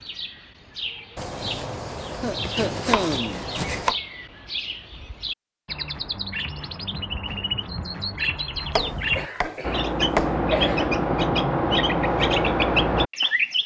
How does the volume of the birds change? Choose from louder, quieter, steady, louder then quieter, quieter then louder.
louder.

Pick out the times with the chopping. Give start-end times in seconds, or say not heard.
1.1-4.0, 8.8-10.3.